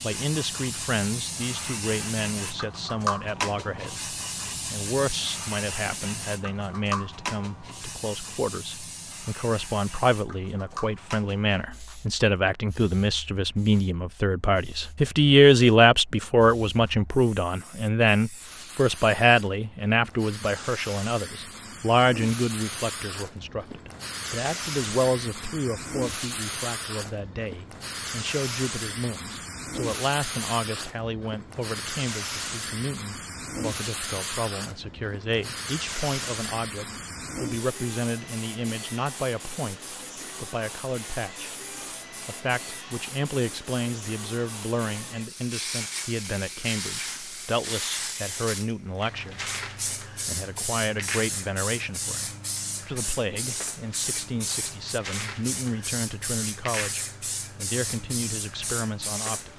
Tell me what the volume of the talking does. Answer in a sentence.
The loudness of the talking goes up, then down.